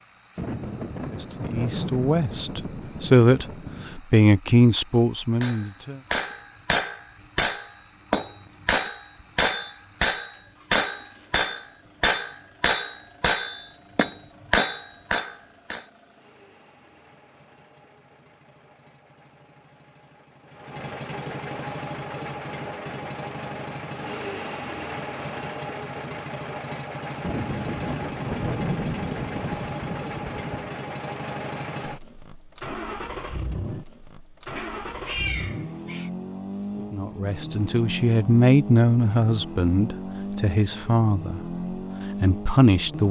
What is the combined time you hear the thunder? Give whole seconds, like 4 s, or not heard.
7 s.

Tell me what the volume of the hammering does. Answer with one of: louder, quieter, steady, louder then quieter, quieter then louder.
quieter.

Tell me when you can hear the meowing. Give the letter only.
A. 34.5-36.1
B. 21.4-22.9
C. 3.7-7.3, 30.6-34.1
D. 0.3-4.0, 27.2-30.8
A.